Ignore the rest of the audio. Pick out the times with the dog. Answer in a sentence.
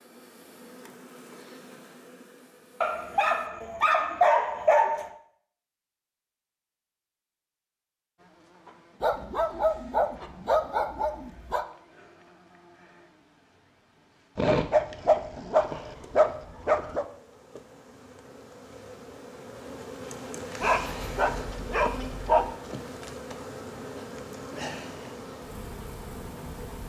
You can hear the dog from 2.8 to 5.1 s, from 9.0 to 11.7 s, from 14.3 to 17.1 s and from 20.6 to 22.6 s.